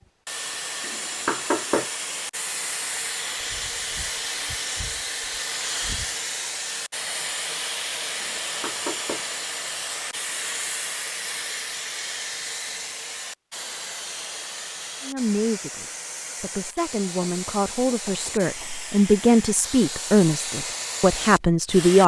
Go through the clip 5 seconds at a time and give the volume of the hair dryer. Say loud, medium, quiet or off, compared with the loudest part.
loud, loud, loud, medium, loud.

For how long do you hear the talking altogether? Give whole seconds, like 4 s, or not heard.
7 s.